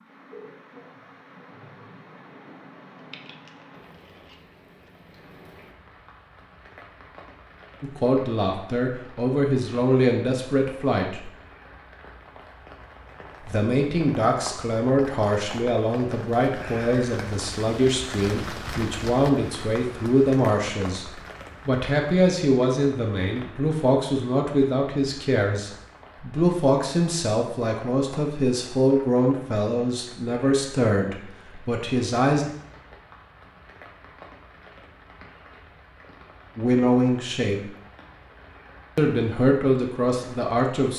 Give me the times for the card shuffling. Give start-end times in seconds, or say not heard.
2.9-4.9.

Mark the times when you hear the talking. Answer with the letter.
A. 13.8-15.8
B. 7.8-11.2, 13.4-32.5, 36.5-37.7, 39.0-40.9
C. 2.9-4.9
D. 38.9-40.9
B.